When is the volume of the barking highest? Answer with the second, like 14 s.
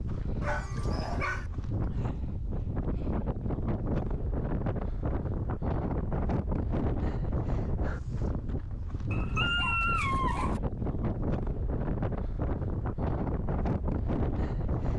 10 s.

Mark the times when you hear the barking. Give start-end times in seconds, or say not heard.
0.4-1.4, 9.1-10.6.